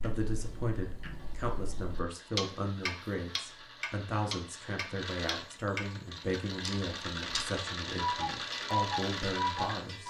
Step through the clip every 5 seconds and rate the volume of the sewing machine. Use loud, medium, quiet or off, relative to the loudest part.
quiet, loud.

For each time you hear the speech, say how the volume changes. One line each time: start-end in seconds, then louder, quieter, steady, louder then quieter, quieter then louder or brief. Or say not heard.
0.0-10.0 steady.